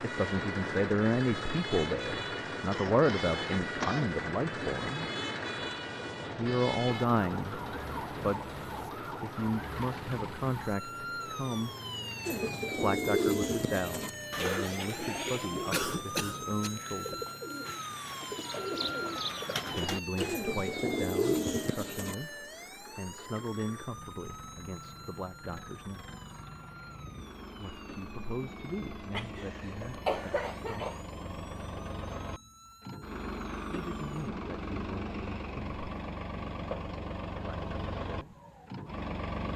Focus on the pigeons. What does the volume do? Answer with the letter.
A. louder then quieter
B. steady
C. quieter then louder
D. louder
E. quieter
C.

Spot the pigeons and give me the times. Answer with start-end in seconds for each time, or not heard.
12.2-22.1.